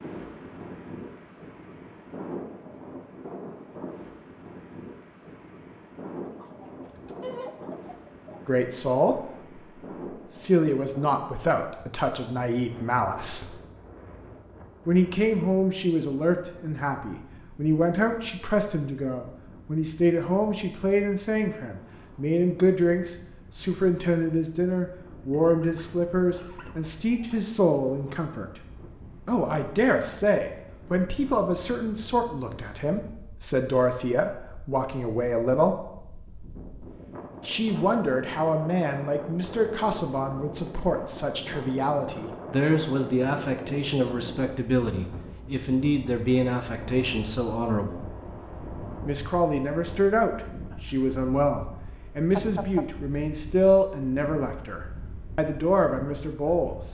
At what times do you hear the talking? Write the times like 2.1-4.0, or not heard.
8.4-9.7, 10.3-13.6, 14.8-28.6, 29.2-35.8, 37.4-48.0, 49.0-56.9.